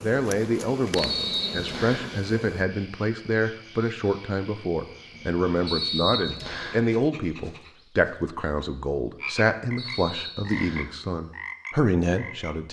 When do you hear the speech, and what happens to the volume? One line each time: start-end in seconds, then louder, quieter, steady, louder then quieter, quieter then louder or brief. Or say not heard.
0.0-12.6 steady.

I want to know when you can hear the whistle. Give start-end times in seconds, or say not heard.
0.9-2.1, 5.7-6.8, 9.8-10.9.